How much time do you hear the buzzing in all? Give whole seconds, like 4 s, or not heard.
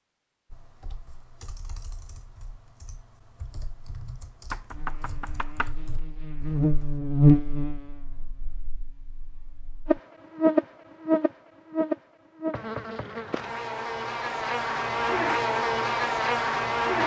12 s.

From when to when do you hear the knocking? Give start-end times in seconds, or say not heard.
4.5-5.7, 12.5-13.2.